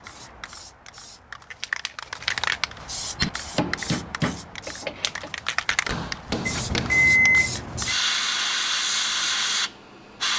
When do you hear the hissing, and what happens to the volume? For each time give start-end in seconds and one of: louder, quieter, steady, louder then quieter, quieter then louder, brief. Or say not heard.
0.0-10.3 louder.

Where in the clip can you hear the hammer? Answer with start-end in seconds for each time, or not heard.
3.1-7.2.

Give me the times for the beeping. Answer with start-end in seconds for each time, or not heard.
6.5-8.0.